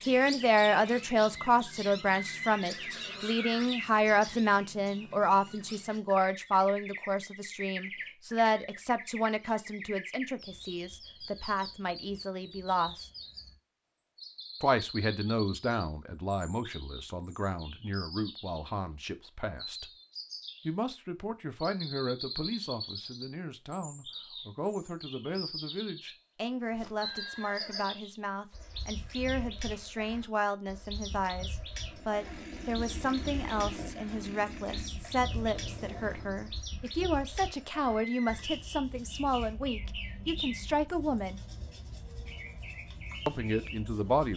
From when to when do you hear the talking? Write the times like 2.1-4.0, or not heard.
0.0-13.1, 14.6-19.9, 20.6-41.4, 43.2-44.3.